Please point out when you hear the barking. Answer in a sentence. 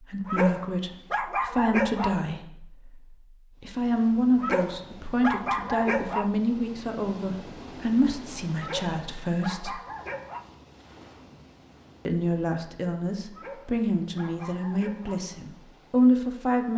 You can hear the barking from 0.2 to 2.2 s, from 4.3 to 6.3 s, from 8.6 to 10.4 s and from 13.3 to 15.3 s.